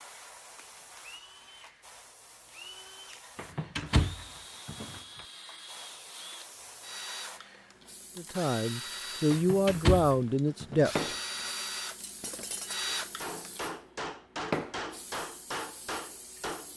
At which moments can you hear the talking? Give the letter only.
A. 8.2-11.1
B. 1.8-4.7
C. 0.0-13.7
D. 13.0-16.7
A.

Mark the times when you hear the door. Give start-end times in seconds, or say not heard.
3.4-5.2, 9.3-11.2.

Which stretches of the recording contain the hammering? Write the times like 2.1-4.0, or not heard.
13.0-16.7.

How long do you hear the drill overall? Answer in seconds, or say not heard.
14 s.